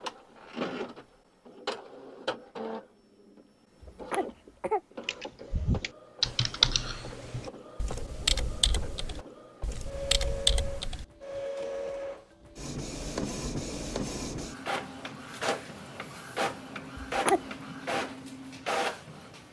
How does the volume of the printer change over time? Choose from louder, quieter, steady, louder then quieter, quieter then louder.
quieter then louder.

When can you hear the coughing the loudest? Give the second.
17 s.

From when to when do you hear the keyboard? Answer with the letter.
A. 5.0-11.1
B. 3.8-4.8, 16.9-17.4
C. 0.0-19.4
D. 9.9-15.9
A.